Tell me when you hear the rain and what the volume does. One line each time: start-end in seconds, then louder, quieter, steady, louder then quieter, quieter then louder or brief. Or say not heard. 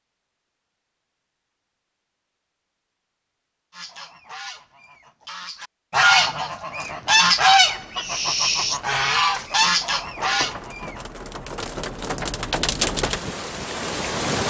6.8-14.4 louder.